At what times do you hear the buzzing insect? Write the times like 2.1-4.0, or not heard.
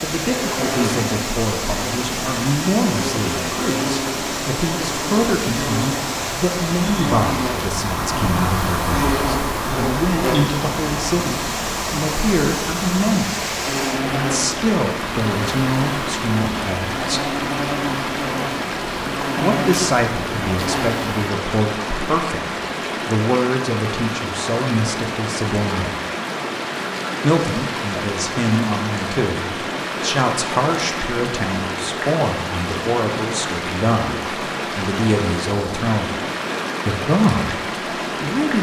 0.2-21.1.